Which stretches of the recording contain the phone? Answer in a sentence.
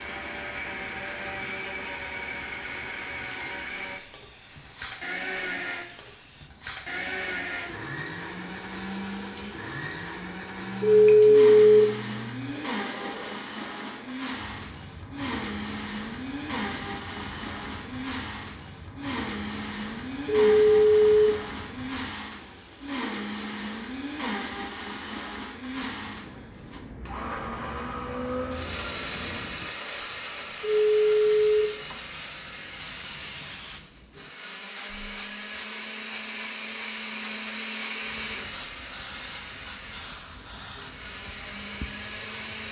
You can hear the phone from 10.8 to 11.8 s, from 20.2 to 21.3 s and from 30.6 to 31.6 s.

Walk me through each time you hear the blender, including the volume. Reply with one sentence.
The blender can be heard from 0.0 to 42.6 s, at a steady volume.